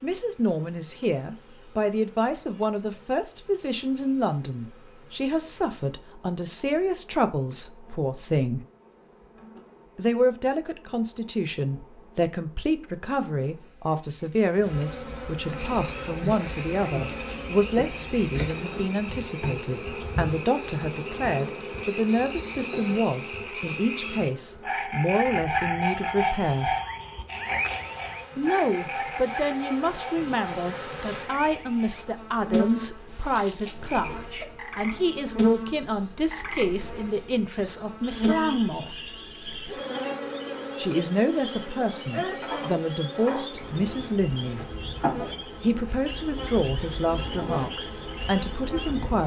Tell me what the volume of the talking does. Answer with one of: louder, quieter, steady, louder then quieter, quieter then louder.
steady.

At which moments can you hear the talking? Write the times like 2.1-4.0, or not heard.
0.0-8.6, 9.9-26.8, 28.4-39.0, 40.8-44.6, 45.6-49.2.